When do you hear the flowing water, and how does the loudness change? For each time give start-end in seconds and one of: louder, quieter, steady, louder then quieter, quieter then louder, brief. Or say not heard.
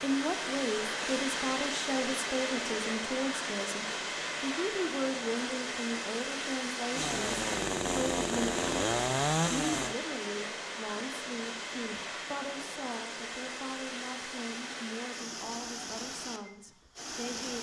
0.0-17.5 quieter.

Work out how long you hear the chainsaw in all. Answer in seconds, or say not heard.
3 s.